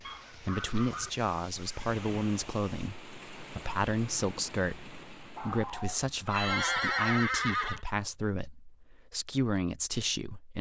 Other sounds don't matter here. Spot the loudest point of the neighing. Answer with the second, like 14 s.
7 s.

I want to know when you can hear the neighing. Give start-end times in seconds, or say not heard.
0.9-2.9, 6.2-7.8.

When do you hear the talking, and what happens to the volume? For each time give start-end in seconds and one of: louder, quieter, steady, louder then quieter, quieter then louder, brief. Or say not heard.
0.3-10.5 steady.